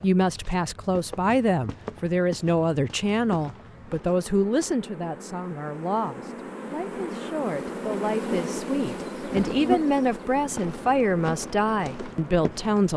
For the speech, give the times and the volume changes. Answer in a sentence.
You can hear the speech from 0.0 to 12.9 s, getting quieter then louder.